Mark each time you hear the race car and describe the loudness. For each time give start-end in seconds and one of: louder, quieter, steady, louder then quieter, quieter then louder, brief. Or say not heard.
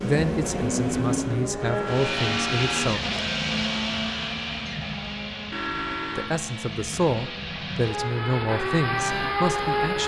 0.0-10.0 quieter then louder.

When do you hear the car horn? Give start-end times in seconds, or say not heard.
1.6-3.0, 5.5-6.3.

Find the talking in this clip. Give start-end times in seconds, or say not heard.
0.0-3.0, 6.2-10.0.